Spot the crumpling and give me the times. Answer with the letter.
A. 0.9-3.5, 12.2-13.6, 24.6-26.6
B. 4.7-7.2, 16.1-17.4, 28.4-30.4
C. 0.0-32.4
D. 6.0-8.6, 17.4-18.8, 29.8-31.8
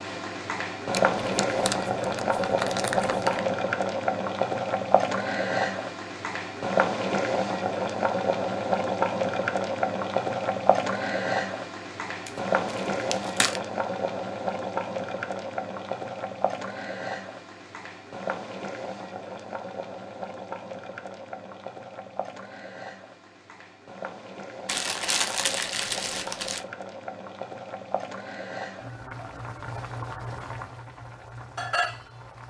A.